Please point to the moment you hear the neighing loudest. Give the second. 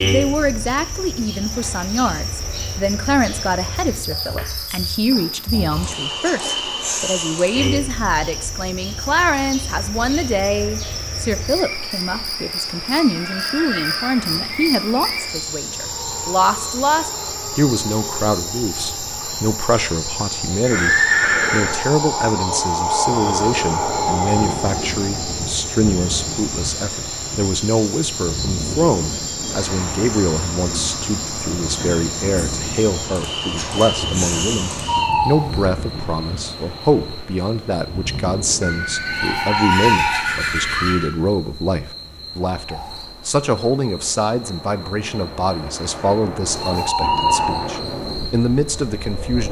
21 s.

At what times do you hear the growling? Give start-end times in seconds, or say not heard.
not heard.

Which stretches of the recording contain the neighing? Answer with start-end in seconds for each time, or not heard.
13.1-14.4, 20.6-21.8, 38.6-41.1.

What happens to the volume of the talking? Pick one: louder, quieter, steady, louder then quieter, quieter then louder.
steady.